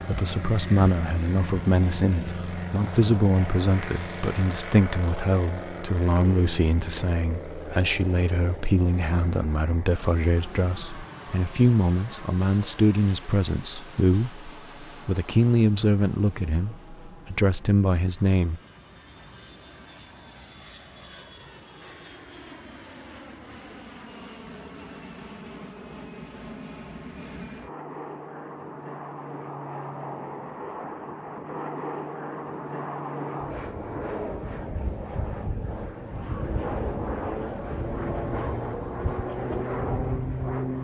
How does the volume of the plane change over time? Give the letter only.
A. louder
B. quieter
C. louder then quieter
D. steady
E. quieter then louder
E.